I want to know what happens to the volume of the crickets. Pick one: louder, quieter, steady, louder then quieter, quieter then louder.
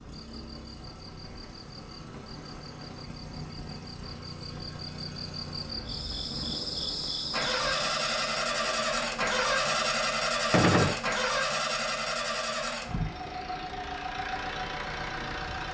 louder.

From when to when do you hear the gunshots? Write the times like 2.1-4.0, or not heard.
10.5-10.9.